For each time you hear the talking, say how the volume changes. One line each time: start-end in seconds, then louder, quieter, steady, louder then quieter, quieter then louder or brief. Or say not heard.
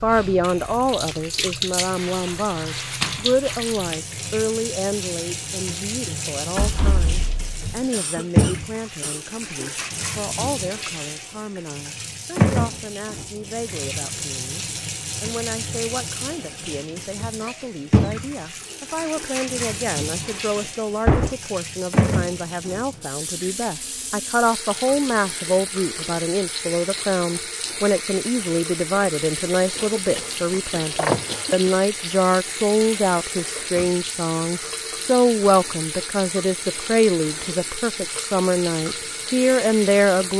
0.0-40.3 quieter then louder.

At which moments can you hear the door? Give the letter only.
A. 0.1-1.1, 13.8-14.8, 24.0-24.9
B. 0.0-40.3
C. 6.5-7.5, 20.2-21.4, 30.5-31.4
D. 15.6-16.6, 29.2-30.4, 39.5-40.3
C.